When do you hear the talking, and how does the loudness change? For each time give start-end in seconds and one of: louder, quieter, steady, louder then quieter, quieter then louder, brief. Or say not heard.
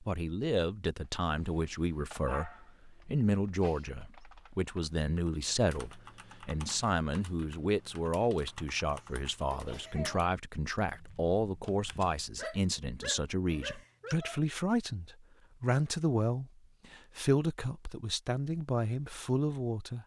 0.0-20.0 steady.